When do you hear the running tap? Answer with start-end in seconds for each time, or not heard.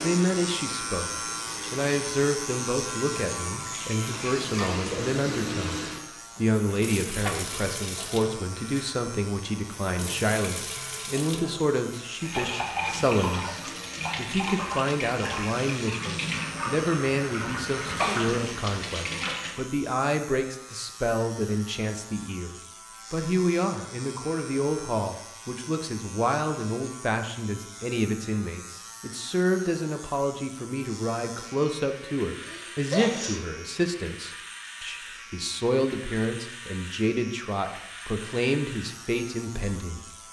0.0-19.6.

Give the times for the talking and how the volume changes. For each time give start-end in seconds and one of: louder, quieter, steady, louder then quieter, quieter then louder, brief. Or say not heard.
0.0-40.0 steady.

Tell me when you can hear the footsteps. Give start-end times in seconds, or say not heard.
not heard.